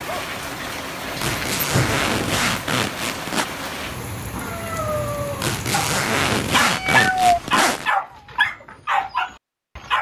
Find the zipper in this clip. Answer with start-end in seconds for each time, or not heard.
1.2-3.5, 5.4-7.9.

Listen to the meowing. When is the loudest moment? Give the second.
7 s.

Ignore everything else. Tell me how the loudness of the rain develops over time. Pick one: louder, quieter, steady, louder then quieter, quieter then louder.
steady.